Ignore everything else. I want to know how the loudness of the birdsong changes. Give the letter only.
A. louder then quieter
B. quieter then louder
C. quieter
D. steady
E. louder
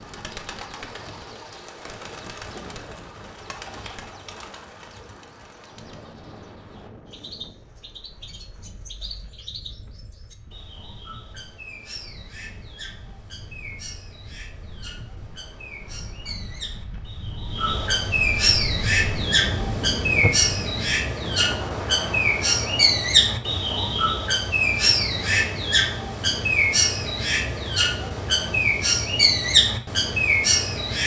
E.